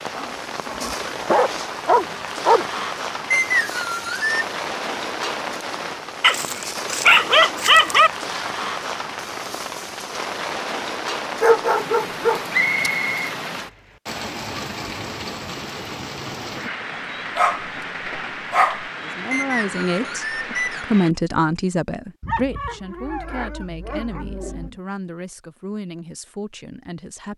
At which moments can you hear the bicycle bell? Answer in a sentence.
You can't hear the bicycle bell here.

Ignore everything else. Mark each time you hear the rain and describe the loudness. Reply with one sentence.
The rain can be heard from 0.0 to 21.1 s, at a steady volume.